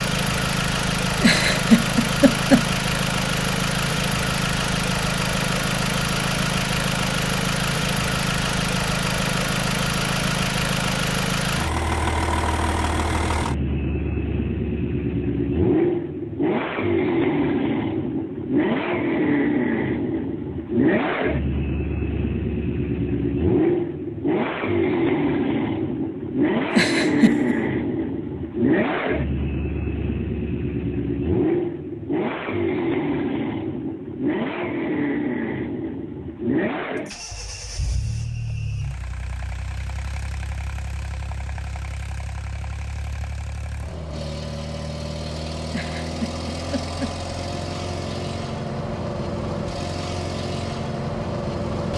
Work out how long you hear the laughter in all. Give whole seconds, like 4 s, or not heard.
4 s.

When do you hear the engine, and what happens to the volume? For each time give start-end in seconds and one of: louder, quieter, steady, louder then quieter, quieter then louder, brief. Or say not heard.
0.0-51.9 quieter.